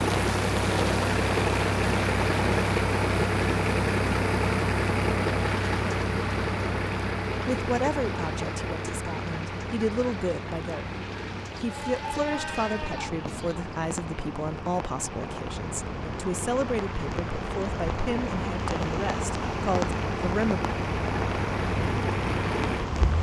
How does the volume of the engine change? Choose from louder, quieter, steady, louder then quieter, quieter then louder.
quieter then louder.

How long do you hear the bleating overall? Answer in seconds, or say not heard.
2 s.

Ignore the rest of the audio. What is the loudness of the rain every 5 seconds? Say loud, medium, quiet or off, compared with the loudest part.
loud, medium, medium, loud, loud.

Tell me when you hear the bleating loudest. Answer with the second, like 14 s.
12 s.